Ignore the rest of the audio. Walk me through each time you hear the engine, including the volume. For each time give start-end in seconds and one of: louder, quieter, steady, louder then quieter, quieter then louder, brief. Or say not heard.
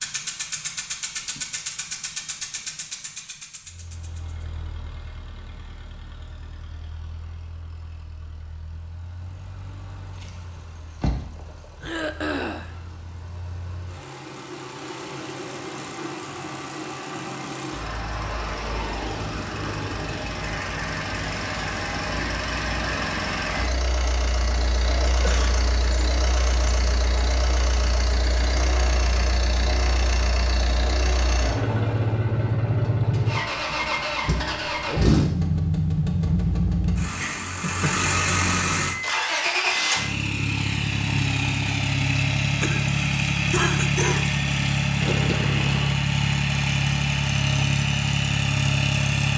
0.0-49.3 louder.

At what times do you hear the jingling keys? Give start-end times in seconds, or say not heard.
10.2-11.9, 45.0-46.0.